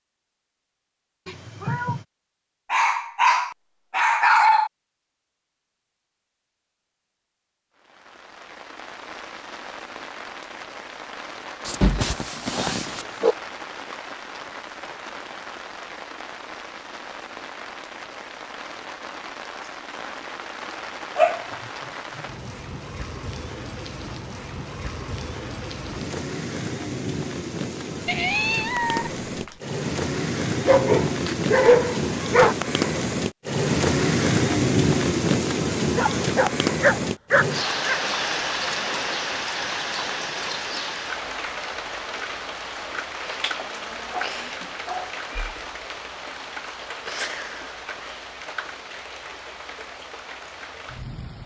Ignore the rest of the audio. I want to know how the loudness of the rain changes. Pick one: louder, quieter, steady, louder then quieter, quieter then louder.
louder then quieter.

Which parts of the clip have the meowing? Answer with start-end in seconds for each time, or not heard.
1.2-2.0, 28.1-29.6, 45.2-45.8.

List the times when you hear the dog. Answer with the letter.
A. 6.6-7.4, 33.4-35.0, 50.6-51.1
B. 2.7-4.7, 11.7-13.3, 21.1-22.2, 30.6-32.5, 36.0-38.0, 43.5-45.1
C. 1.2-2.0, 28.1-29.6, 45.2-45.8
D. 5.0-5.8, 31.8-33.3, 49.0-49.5
B.